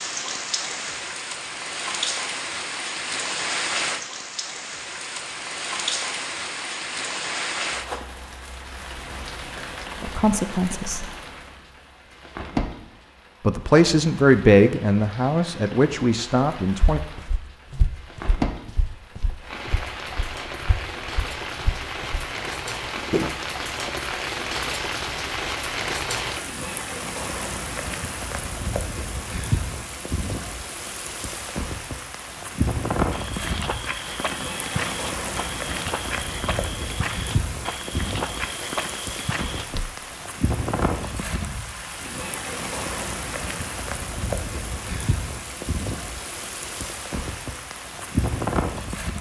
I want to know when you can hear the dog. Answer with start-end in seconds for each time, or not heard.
not heard.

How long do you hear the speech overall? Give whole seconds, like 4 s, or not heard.
5 s.